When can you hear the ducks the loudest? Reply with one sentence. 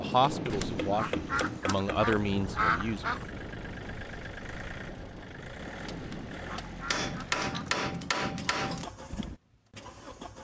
The loudest moment of the ducks is at 3 seconds.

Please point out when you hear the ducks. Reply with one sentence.
You can hear the ducks from 0.5 to 3.2 s and from 6.0 to 7.8 s.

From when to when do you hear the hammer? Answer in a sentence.
You can hear the hammer from 0.2 to 2.1 s and from 6.8 to 8.8 s.